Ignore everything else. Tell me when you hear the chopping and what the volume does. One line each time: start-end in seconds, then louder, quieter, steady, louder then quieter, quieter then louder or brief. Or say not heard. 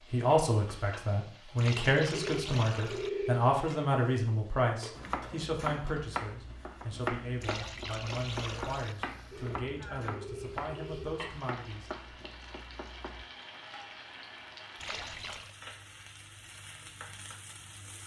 5.0-13.2 quieter.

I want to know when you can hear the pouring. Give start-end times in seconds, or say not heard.
1.6-3.1, 7.4-8.9, 14.8-15.6.